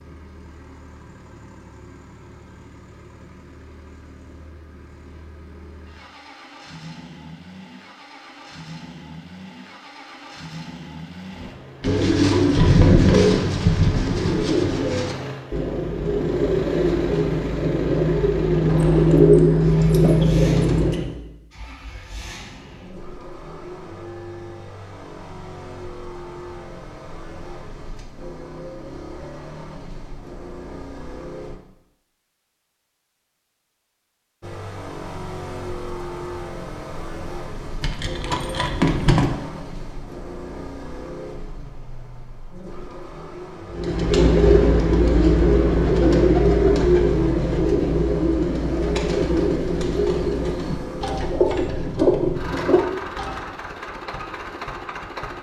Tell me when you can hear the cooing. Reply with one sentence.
The cooing can be heard from 11.4 to 21.2 s and from 43.7 to 53.5 s.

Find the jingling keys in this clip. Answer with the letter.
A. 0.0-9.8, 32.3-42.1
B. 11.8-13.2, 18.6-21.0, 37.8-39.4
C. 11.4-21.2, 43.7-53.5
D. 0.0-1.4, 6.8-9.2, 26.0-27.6
B.